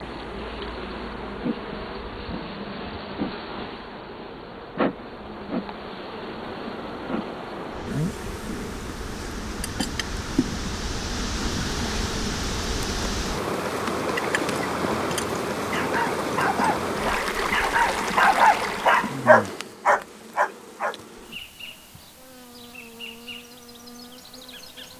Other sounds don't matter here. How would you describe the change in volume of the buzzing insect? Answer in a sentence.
The volume of the buzzing insect goes down.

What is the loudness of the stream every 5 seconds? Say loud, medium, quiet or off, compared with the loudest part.
quiet, medium, loud, loud, off.